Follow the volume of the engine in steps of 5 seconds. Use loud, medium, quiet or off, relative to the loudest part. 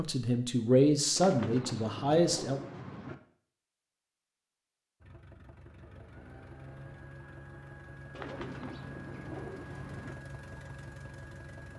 off, loud, loud.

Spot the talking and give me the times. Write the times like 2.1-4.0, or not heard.
0.0-2.6.